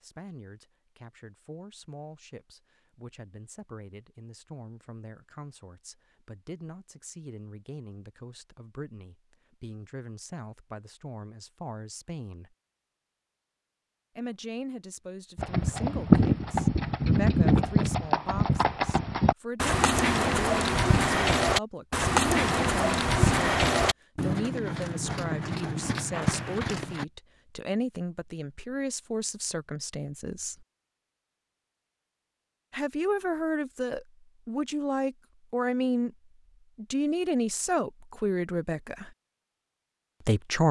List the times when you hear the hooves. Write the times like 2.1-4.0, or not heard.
15.3-27.1.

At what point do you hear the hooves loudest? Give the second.
16 s.